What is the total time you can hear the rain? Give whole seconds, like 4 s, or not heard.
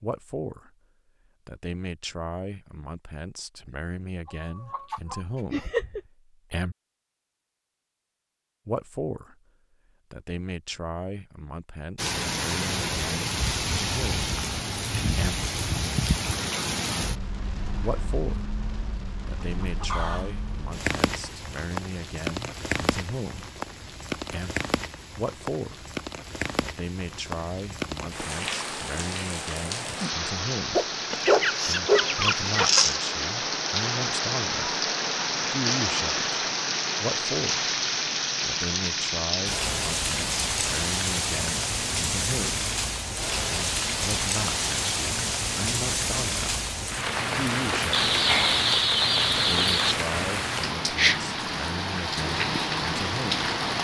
42 s.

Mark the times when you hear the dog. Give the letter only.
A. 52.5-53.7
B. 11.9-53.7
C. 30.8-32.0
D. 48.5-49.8
C.